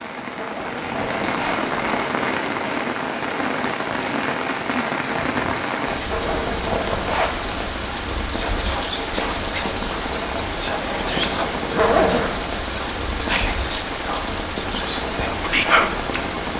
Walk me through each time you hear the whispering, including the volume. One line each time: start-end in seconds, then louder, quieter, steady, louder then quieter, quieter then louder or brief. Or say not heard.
8.2-15.9 steady.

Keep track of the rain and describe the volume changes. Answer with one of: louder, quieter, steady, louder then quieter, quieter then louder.
steady.